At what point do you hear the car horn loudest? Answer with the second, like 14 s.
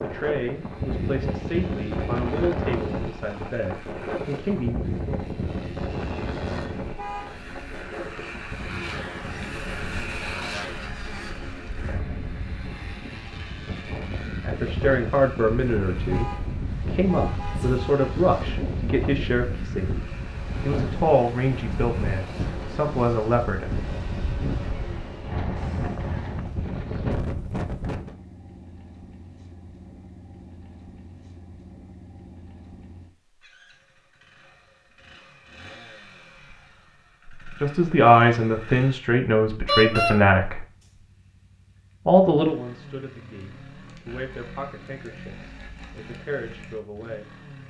40 s.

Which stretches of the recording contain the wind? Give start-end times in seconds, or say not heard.
0.0-28.1.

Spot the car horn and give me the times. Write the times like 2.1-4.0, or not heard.
7.0-7.5, 16.1-18.1, 39.6-40.1.